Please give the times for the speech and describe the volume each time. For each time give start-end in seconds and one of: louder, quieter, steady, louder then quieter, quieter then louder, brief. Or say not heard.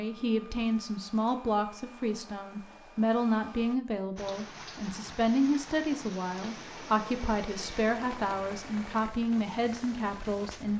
0.0-10.7 steady.